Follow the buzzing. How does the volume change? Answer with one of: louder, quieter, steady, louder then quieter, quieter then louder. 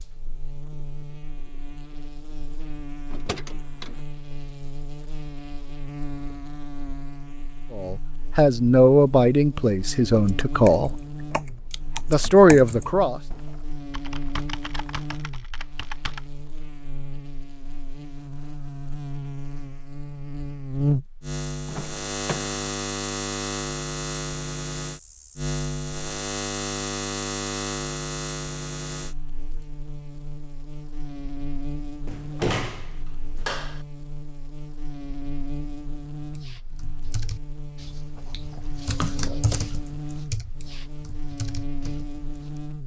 louder then quieter.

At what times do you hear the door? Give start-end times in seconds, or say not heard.
3.1-4.0, 21.6-22.6, 32.0-33.9.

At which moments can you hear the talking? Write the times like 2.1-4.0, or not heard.
7.7-10.9, 12.1-13.2.